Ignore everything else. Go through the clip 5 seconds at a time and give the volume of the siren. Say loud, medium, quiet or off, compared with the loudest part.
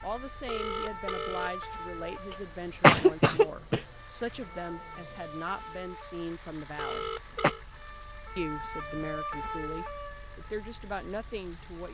loud, loud, medium.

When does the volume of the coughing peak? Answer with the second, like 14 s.
3 s.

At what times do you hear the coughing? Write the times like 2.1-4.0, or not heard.
2.5-3.8, 6.9-7.5.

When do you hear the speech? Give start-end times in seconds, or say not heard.
0.0-7.1, 8.3-11.8.